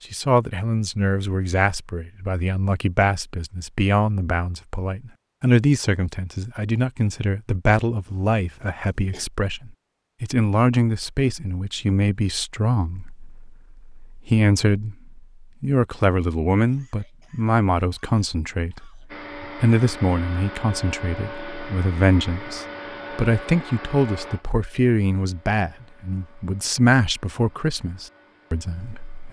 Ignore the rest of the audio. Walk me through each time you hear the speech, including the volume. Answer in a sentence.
The speech can be heard from 0.1 to 29.2 s, at a steady volume.